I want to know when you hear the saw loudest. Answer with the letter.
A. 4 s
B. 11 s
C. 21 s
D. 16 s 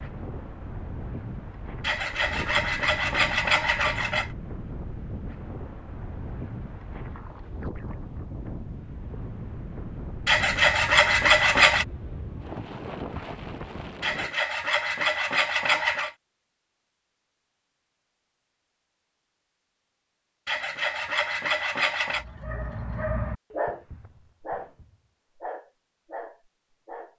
B.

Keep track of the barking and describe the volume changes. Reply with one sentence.
The volume of the barking goes down.